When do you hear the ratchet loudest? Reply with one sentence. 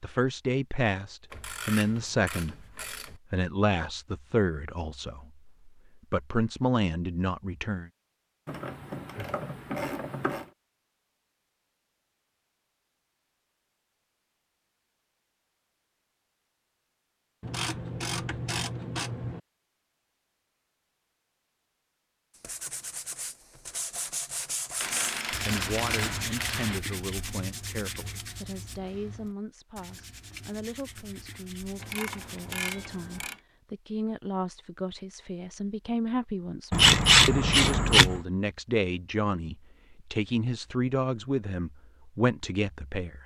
The loudest moment of the ratchet is at 37 seconds.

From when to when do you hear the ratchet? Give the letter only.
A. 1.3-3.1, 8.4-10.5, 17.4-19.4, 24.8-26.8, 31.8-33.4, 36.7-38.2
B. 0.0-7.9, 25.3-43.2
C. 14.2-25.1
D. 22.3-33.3
A.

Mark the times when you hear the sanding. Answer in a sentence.
The sanding can be heard from 22.3 to 33.3 s.